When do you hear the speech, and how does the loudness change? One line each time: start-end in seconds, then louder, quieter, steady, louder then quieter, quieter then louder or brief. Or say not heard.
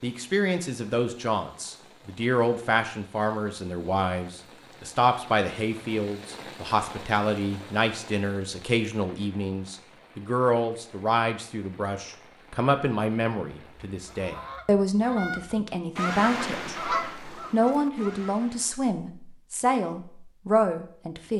0.0-21.3 steady.